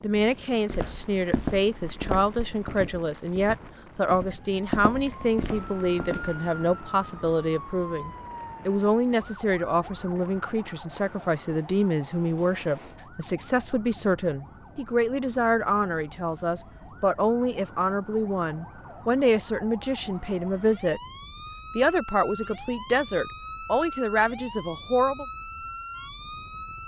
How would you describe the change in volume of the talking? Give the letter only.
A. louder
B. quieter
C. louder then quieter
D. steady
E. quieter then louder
D.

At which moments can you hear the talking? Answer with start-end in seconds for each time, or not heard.
0.0-21.0, 21.8-25.2.